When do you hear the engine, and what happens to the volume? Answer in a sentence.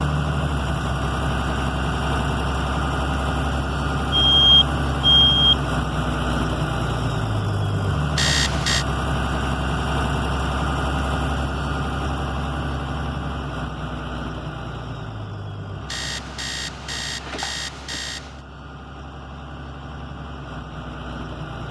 You can hear the engine from 0.0 to 21.6 s, getting quieter.